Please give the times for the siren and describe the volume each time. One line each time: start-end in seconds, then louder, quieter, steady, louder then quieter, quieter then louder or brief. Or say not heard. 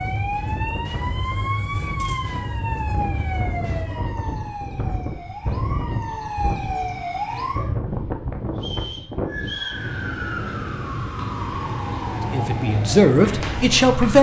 0.0-7.8 quieter then louder
9.2-14.1 steady.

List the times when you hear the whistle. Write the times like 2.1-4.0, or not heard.
8.6-9.8.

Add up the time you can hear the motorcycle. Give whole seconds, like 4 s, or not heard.
not heard.